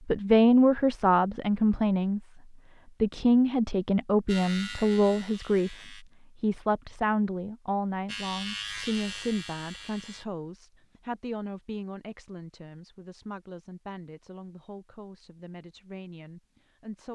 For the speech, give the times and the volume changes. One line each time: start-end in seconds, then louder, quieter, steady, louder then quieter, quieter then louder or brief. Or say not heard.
0.1-2.2 brief
3.0-17.1 quieter.